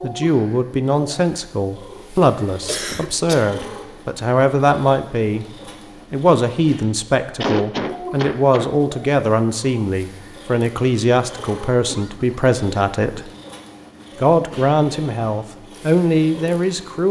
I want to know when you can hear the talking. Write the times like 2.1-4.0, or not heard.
0.0-5.5, 6.1-13.2, 14.2-17.0.